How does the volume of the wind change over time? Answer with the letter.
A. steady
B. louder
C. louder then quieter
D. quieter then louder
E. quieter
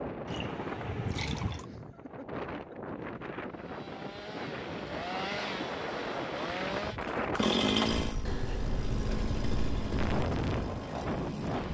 B.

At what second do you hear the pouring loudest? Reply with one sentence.
The volume of the pouring peaks at 1 second.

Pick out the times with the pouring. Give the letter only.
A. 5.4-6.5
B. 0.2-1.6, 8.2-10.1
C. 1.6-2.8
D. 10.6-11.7
B.